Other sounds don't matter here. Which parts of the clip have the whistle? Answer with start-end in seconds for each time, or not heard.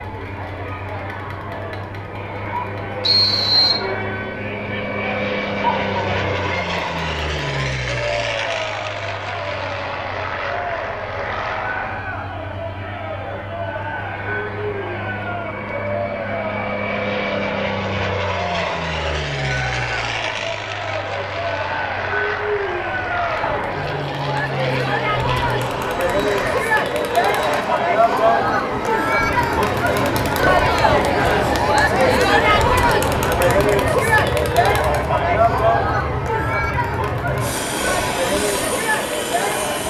3.0-3.8.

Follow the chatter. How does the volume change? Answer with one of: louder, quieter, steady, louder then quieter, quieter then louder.
louder.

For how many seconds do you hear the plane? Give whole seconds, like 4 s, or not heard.
40 s.